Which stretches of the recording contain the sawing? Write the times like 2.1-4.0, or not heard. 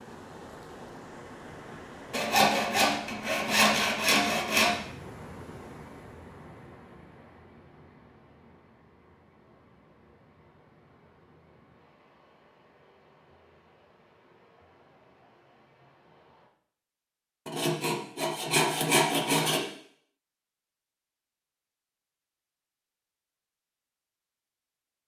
2.1-4.8, 17.4-19.6.